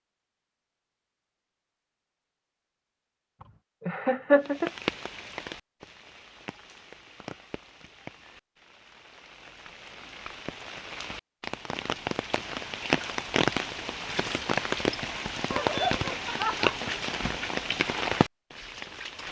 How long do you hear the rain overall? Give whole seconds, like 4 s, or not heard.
15 s.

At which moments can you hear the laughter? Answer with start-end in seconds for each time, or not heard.
3.9-4.7, 15.5-17.0.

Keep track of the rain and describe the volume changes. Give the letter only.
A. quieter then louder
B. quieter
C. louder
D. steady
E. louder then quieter
A.